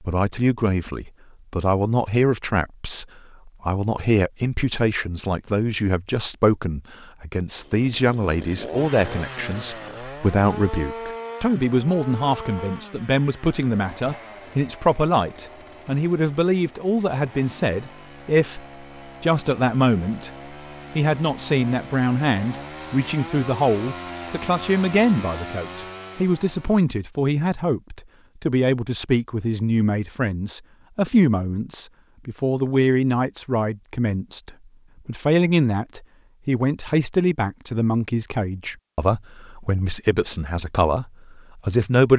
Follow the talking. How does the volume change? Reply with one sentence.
The loudness of the talking stays about the same.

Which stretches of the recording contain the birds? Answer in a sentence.
You can't hear the birds here.